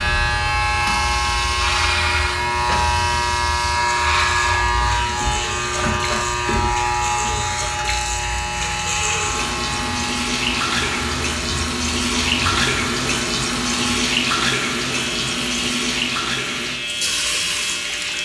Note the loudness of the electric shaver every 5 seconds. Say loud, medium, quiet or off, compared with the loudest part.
loud, loud, medium, medium.